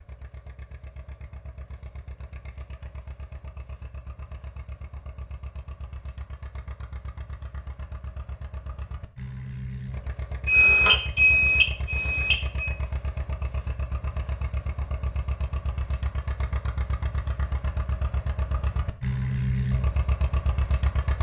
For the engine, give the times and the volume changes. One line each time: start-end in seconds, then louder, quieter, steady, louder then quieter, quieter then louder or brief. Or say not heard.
0.0-21.1 louder.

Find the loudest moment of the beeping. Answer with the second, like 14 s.
11 s.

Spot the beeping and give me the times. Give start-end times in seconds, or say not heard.
10.4-12.7.